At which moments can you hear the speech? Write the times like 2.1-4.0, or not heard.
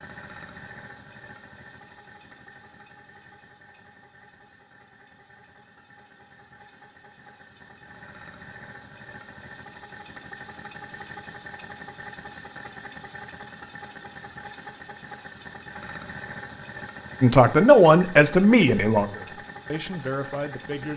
17.2-20.9.